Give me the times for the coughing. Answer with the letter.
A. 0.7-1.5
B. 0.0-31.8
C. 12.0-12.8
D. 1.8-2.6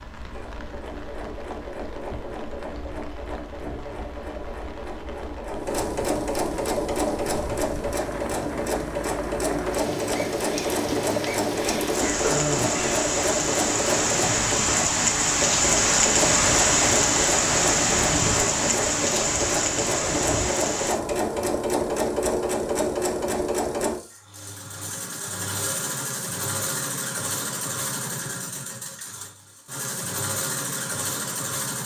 C.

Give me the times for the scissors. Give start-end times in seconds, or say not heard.
not heard.